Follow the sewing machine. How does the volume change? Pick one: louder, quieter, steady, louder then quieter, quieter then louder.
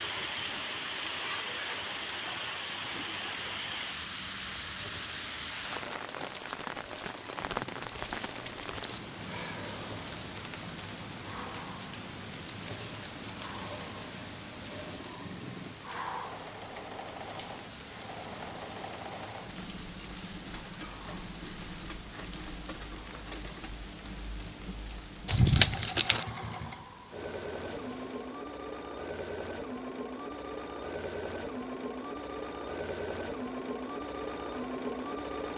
louder.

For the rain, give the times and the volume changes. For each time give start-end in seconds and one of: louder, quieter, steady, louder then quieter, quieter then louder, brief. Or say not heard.
0.0-28.4 quieter.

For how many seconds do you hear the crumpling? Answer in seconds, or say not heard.
2 s.